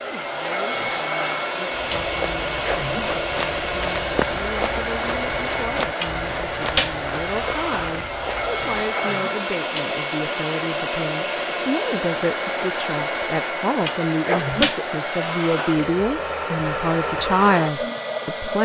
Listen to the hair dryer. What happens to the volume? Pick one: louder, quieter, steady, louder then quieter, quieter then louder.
steady.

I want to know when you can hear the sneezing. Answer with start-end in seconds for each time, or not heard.
2.6-3.1, 8.9-9.3, 14.1-14.7.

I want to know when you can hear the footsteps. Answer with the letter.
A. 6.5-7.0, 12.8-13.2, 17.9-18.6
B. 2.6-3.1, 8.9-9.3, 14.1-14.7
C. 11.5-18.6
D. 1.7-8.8
D.